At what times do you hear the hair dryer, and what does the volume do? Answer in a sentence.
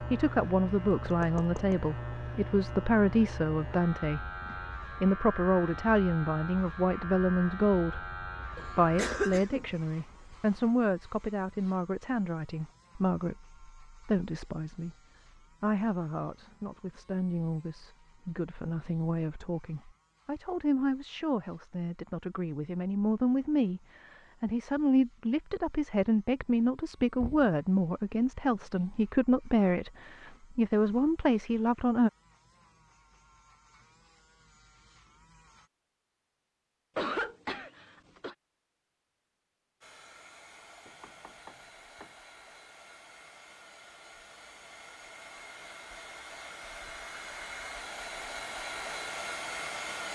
The hair dryer can be heard from 39.8 to 50.1 s, getting louder.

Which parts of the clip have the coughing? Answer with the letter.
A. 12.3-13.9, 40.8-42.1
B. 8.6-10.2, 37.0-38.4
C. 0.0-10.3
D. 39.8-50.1
B.